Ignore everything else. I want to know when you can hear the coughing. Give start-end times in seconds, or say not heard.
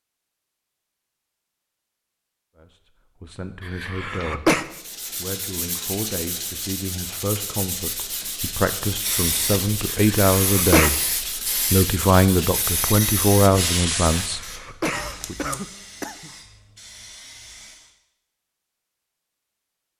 3.6-4.7, 10.1-10.9, 14.2-16.3.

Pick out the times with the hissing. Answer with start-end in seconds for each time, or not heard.
8.8-17.9.